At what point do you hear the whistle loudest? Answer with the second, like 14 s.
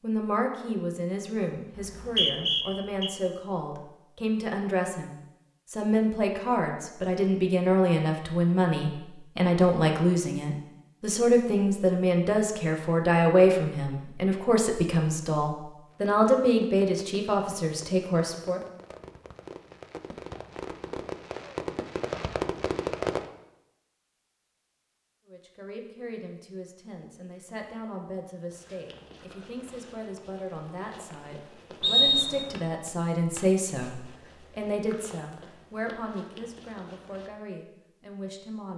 32 s.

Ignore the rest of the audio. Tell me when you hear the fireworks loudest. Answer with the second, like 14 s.
23 s.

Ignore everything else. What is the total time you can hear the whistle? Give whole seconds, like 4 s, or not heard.
2 s.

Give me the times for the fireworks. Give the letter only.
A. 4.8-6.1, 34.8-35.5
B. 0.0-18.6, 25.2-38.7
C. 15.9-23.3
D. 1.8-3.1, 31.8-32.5
C.